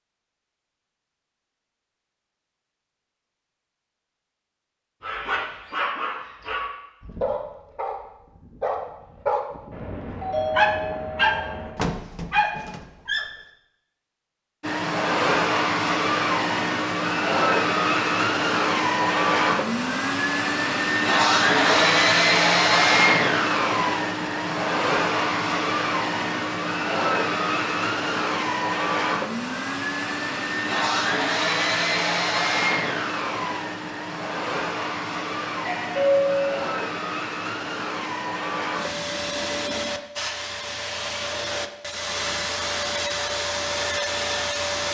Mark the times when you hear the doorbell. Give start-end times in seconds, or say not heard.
9.7-11.7, 21.5-22.0, 35.6-36.5.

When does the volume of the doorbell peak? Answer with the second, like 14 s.
36 s.